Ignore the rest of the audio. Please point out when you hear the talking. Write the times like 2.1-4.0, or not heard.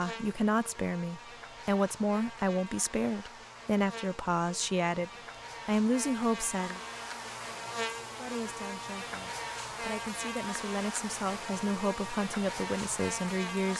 0.0-6.8, 8.2-13.7.